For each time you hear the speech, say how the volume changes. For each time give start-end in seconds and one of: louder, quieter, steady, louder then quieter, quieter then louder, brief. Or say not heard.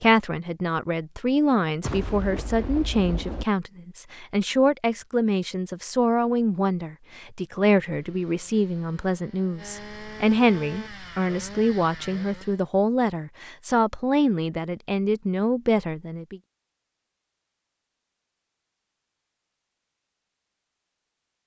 0.0-16.4 steady.